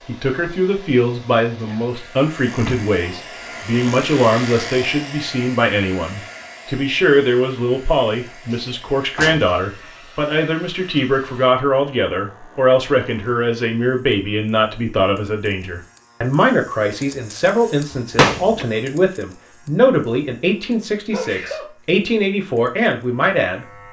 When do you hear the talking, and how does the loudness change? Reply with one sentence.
You can hear the talking from 0.1 to 23.8 s, at a steady volume.